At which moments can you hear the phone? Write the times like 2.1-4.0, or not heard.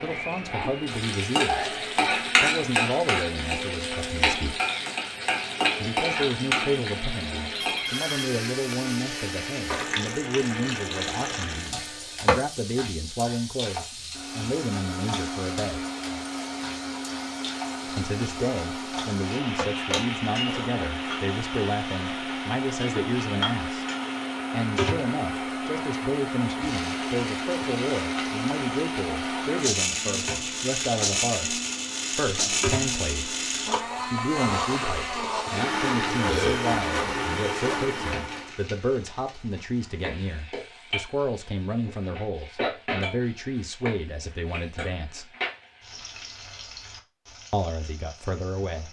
7.5-8.9.